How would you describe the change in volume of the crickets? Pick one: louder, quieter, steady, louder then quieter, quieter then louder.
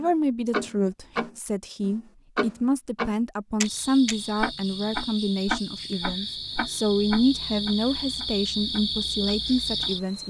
louder.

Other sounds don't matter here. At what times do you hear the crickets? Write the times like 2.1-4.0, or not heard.
3.6-10.2.